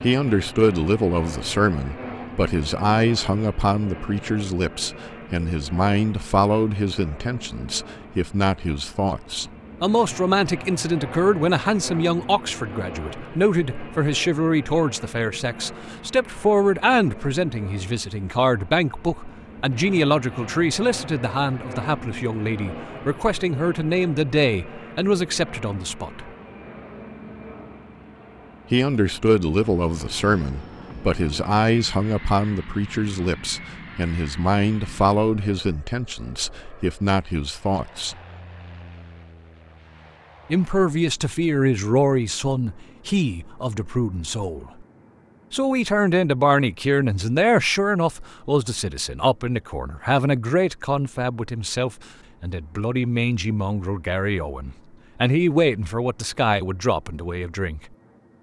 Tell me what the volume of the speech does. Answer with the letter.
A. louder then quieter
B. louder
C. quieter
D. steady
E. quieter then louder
D.